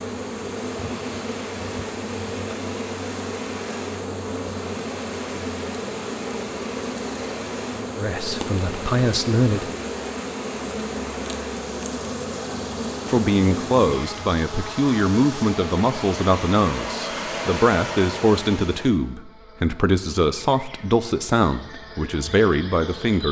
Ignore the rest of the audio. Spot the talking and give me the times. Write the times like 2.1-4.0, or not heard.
8.0-9.7, 13.1-23.2.